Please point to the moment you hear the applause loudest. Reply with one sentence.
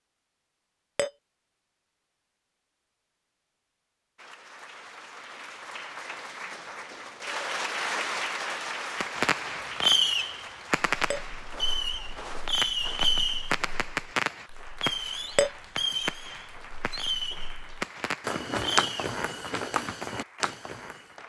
The loudest moment of the applause is at 8 seconds.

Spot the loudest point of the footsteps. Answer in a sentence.
The loudest moment of the footsteps is at 19 seconds.